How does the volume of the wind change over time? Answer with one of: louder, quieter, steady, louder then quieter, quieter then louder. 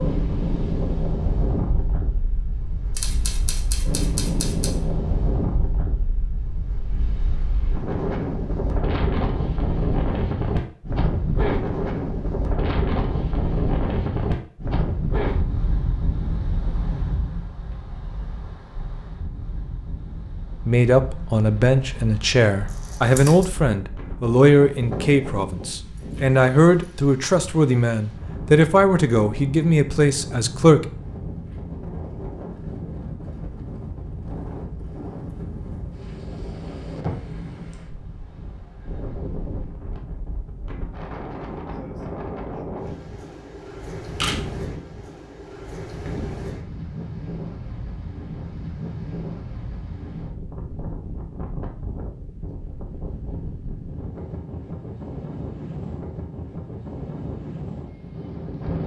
quieter.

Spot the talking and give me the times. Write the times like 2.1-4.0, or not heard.
20.6-30.9.